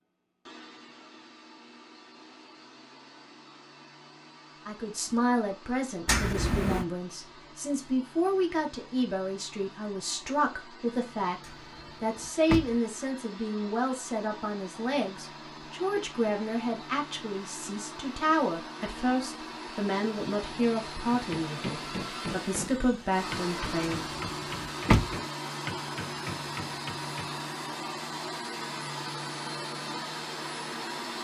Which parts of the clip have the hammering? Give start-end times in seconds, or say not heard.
21.1-27.4.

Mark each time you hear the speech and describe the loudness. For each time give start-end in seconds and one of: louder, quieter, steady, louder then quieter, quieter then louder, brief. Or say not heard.
4.7-24.1 steady.